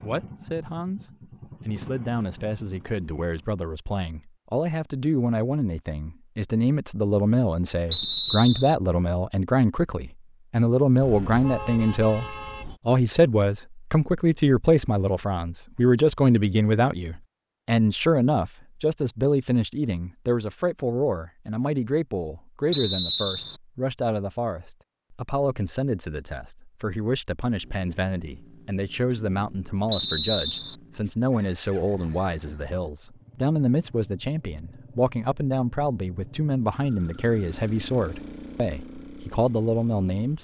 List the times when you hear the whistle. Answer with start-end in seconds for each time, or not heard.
7.9-8.8, 22.7-23.6, 29.9-30.8.